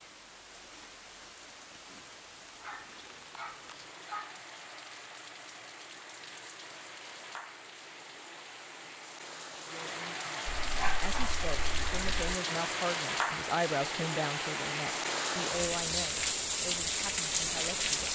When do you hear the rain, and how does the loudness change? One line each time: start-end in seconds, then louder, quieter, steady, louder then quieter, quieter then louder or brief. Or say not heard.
0.0-18.1 louder.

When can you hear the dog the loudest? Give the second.
11 s.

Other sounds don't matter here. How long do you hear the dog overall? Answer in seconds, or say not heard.
4 s.